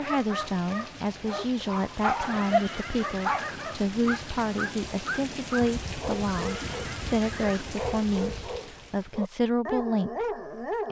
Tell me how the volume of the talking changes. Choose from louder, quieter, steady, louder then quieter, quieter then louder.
steady.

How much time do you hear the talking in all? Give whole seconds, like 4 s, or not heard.
11 s.